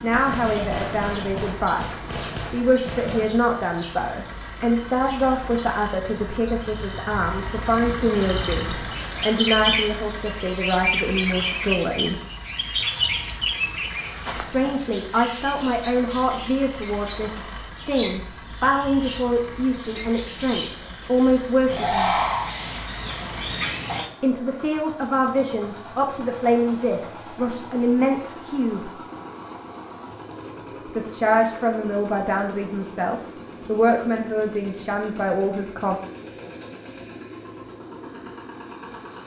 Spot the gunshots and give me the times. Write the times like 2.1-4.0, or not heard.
0.1-3.3.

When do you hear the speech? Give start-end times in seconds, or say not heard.
0.0-12.2, 14.3-22.1, 24.2-28.9, 30.9-36.0.